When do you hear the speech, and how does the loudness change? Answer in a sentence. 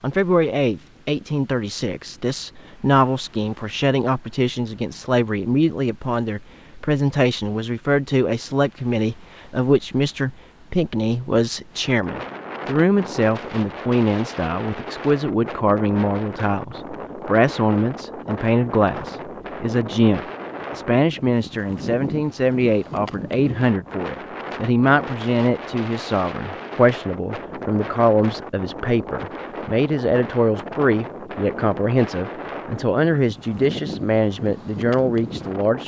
The speech can be heard from 0.0 to 35.8 s, at a steady volume.